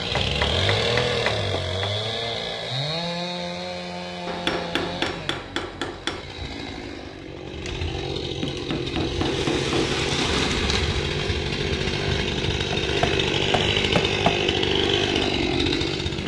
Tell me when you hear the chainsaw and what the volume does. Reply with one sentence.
The chainsaw can be heard from 0.0 to 16.2 s, getting quieter then louder.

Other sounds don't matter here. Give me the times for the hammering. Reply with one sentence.
You can hear the hammering from 0.1 to 1.9 s, from 4.2 to 6.2 s, from 8.4 to 10.4 s and from 12.5 to 14.3 s.